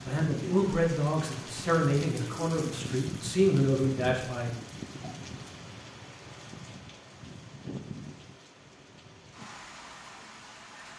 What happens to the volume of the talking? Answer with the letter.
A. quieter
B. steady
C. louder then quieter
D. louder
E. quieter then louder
E.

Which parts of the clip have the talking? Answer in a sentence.
You can hear the talking from 0.0 to 4.5 s.